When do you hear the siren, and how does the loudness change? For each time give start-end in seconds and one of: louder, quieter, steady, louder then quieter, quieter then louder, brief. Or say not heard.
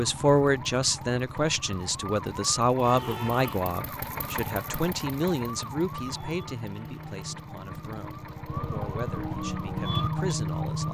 0.0-10.8 louder.